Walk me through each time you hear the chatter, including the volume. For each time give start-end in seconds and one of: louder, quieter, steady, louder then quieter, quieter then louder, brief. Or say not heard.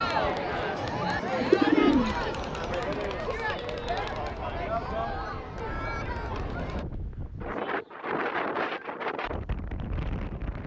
0.0-6.8 quieter.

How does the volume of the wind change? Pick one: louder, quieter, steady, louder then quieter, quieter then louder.
louder.